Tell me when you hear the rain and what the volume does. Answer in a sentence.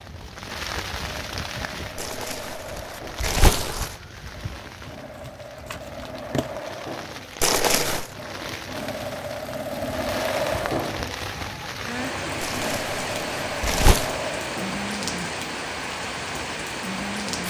You can hear the rain from 0.0 to 17.4 s, getting quieter then louder.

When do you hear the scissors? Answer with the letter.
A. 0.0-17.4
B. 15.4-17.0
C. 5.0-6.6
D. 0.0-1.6
C.